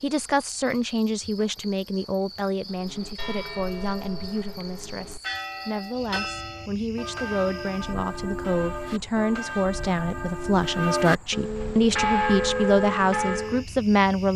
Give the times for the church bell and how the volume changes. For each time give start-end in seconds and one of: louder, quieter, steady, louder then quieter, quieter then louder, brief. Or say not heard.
2.6-13.7 louder.